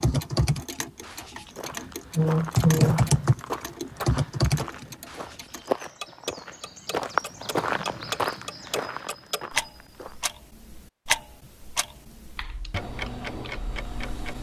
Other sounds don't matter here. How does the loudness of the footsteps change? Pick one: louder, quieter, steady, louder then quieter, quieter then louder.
louder then quieter.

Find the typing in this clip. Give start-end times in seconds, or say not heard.
0.0-1.4, 2.1-5.2, 11.4-14.3.